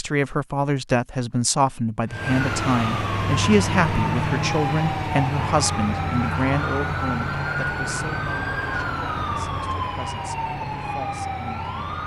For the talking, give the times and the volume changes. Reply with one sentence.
You can hear the talking from 0.0 to 11.8 s, getting quieter.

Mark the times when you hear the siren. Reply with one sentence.
The siren can be heard from 2.1 to 12.0 s.